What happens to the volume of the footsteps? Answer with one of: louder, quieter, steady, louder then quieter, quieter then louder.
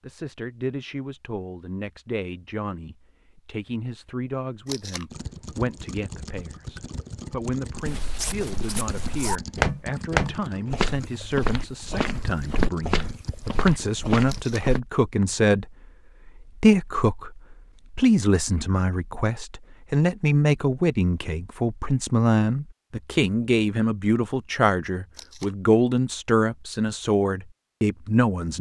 louder then quieter.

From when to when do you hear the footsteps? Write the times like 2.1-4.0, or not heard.
7.8-14.8.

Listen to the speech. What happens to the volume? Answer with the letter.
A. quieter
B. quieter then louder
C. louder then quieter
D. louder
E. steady
D.